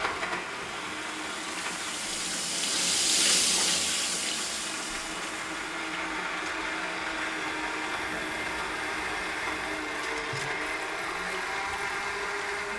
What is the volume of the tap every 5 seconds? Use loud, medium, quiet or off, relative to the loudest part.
loud, quiet, quiet.